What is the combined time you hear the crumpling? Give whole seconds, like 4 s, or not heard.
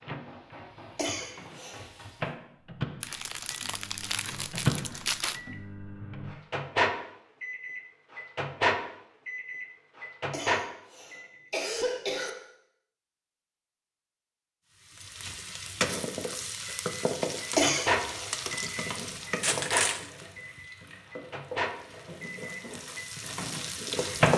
3 s.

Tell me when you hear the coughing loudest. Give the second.
18 s.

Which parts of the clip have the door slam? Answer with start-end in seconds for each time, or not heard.
not heard.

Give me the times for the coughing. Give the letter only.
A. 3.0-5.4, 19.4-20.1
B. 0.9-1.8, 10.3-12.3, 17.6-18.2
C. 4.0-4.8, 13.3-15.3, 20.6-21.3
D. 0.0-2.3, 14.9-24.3
B.